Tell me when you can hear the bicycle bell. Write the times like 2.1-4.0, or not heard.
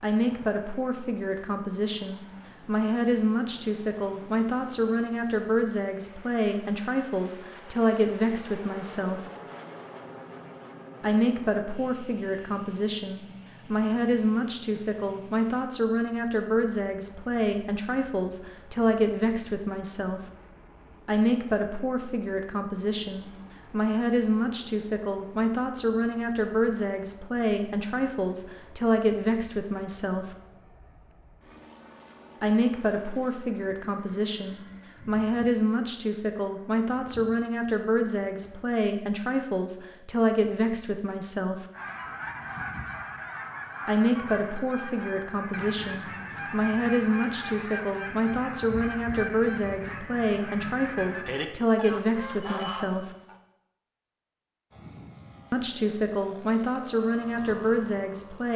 52.4-53.0.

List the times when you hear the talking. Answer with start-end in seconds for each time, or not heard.
0.0-9.3, 11.0-20.2, 21.1-30.4, 32.4-41.6, 43.9-53.1, 55.5-58.5.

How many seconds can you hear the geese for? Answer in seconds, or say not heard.
12 s.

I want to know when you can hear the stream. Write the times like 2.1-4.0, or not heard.
not heard.